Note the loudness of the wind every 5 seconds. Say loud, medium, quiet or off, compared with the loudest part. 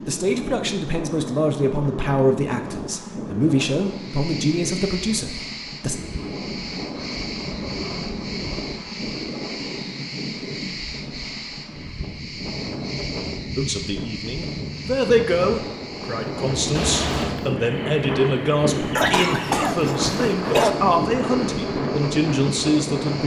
medium, medium, medium, loud, loud.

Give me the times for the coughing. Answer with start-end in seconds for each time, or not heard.
18.9-20.7.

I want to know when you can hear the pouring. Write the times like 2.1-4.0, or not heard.
16.8-17.4.